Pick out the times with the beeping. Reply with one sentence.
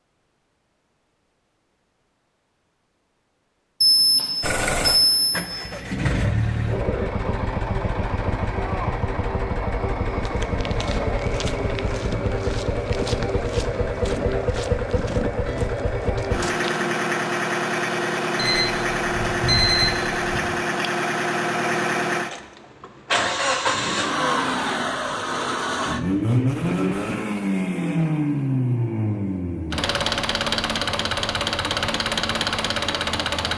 You can hear the beeping from 3.8 to 5.5 s and from 18.4 to 20.4 s.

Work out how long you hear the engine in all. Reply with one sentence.
You can hear the engine for 29 seconds altogether.